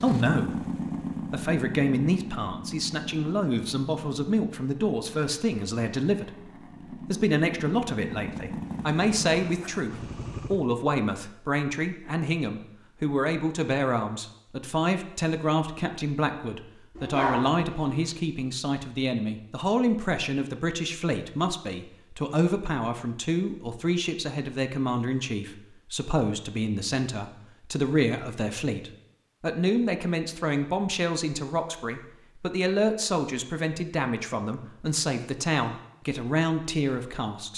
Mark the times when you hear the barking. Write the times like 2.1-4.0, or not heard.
16.9-18.1.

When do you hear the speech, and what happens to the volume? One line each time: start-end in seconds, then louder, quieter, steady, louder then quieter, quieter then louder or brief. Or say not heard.
0.0-0.7 brief
1.3-37.5 steady.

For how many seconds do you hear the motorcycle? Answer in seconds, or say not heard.
11 s.